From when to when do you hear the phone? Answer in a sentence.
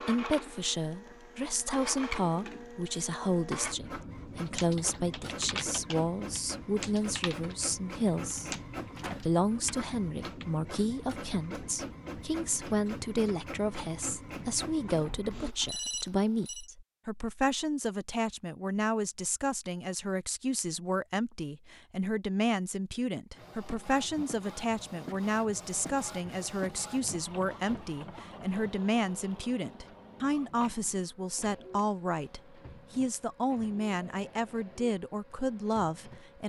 The phone can be heard from 15.3 to 16.6 s.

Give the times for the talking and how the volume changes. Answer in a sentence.
You can hear the talking from 0.1 to 8.6 s, at a steady volume; and from 9.2 to 36.4 s, at a steady volume.